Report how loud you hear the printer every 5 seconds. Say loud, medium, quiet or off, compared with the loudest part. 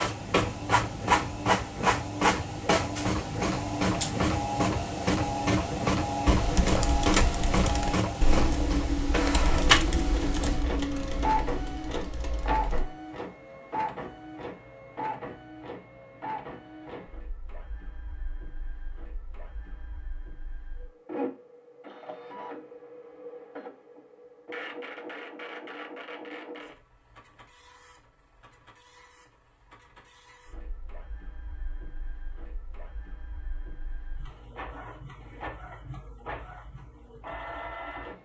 loud, loud, medium, quiet, quiet, quiet, quiet, quiet.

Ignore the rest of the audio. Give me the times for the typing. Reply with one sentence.
The typing can be heard from 6.3 to 12.8 s.